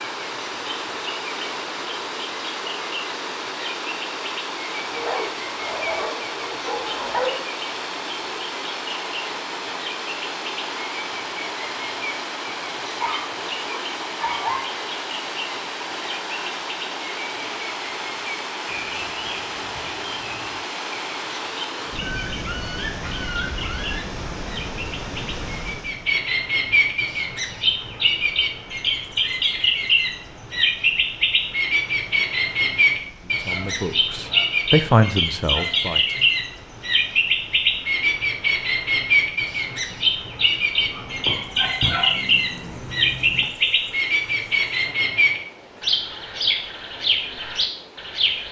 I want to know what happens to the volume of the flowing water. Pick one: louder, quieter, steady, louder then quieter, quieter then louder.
quieter.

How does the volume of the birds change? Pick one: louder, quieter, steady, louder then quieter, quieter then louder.
louder.